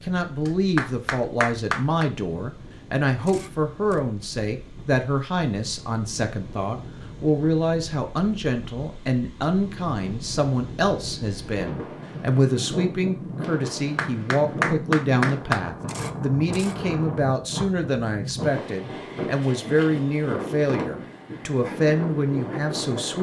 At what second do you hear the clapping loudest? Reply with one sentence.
The volume of the clapping peaks at 15 seconds.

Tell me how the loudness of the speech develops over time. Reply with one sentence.
The loudness of the speech stays about the same.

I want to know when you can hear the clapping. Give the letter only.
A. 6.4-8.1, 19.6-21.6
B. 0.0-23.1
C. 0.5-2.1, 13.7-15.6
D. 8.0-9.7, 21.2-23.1
C.